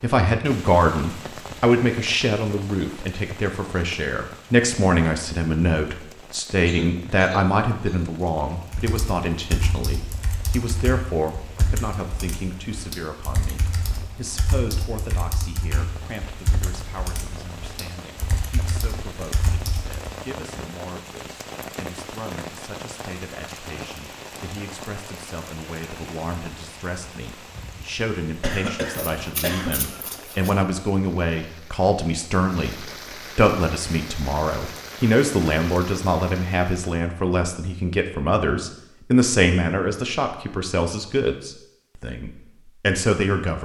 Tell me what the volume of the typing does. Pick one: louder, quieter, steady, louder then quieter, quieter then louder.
steady.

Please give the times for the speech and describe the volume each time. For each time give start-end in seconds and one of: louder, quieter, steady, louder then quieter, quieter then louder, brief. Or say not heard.
0.0-43.6 quieter then louder.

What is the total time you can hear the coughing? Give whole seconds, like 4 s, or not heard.
3 s.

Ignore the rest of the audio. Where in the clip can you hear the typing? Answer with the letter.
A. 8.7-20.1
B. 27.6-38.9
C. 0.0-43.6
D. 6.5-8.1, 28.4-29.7
A.